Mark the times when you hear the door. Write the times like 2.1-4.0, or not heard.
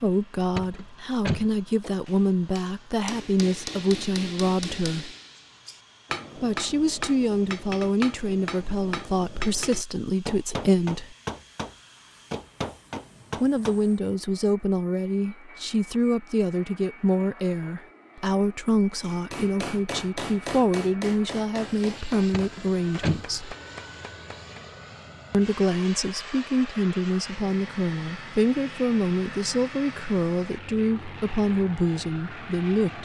0.6-1.4, 22.3-23.2.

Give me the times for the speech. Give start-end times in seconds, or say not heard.
0.0-5.1, 6.3-11.2, 13.4-23.6, 25.3-33.0.